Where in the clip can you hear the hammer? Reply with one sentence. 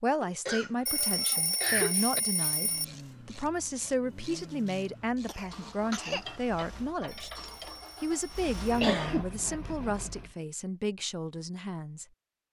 The hammer can't be heard in this clip.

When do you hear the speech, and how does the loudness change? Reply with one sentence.
You can hear the speech from 0.0 to 7.3 s, at a steady volume; and from 8.0 to 12.1 s, getting quieter.